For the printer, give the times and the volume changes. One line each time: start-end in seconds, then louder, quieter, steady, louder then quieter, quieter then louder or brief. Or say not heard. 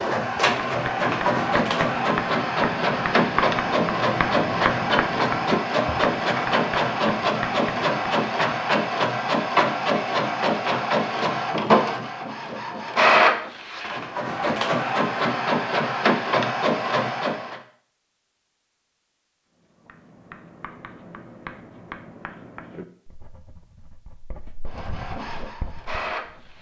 0.0-17.6 steady
24.8-26.5 brief.